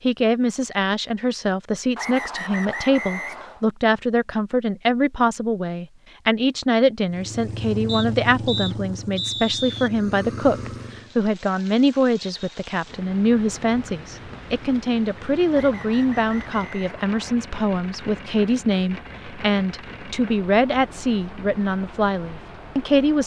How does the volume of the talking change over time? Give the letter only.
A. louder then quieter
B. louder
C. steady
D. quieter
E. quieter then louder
C.